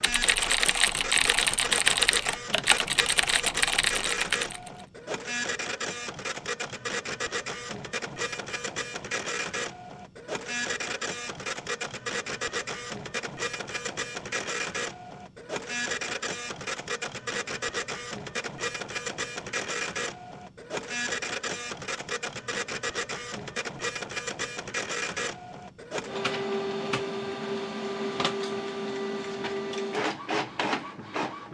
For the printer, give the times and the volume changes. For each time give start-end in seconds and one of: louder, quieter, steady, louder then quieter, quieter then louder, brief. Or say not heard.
0.0-31.4 steady.